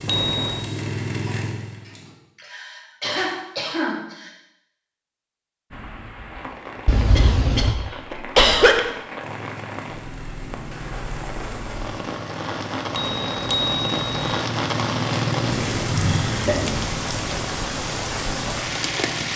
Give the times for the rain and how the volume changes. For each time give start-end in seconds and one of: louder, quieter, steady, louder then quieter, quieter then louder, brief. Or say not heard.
5.7-19.3 louder.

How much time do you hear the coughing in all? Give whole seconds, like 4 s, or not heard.
5 s.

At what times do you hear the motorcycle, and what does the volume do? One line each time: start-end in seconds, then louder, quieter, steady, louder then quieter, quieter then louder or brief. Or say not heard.
0.0-2.1 brief
9.2-19.3 louder then quieter.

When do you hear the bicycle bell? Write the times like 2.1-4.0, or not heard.
0.1-0.7, 6.8-7.8, 12.9-14.3.